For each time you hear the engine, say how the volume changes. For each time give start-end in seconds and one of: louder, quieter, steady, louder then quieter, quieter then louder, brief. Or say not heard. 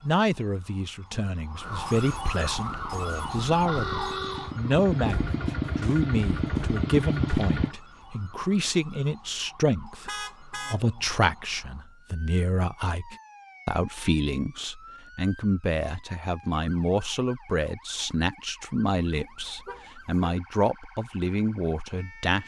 2.5-7.8 louder.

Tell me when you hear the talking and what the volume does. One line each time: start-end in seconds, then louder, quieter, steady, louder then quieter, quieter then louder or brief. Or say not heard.
0.0-22.4 steady.